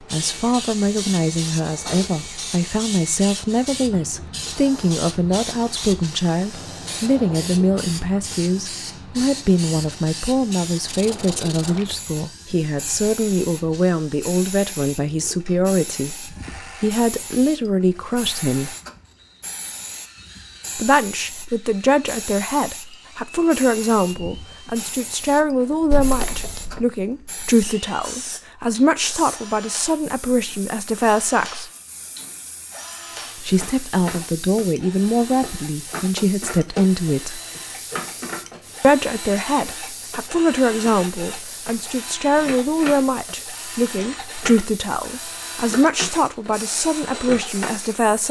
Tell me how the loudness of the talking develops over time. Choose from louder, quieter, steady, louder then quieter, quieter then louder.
steady.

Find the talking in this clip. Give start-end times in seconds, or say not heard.
0.1-18.8, 20.8-31.7, 33.4-37.4, 38.8-48.2.